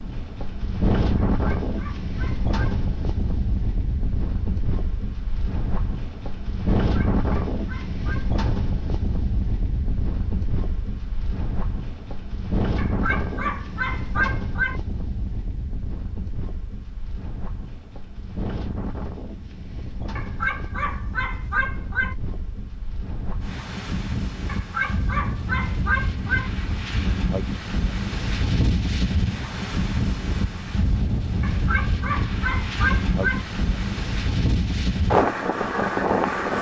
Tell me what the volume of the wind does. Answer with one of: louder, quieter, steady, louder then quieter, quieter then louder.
quieter then louder.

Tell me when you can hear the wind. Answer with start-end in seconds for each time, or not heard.
0.0-36.5.